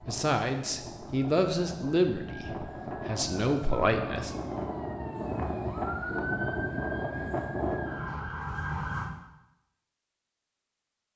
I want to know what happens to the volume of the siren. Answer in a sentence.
The volume of the siren goes up.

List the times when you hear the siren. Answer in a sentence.
The siren can be heard from 0.0 to 9.1 s.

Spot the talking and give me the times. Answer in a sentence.
You can hear the talking from 0.1 to 4.3 s.